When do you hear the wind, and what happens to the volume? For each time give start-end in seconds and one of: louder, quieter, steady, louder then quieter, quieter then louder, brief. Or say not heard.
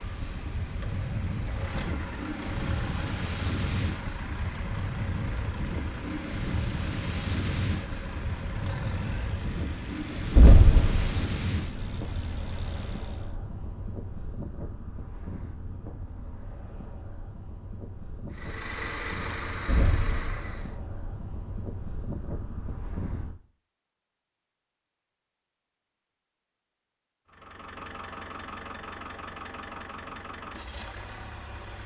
0.0-23.4 quieter.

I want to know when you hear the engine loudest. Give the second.
19 s.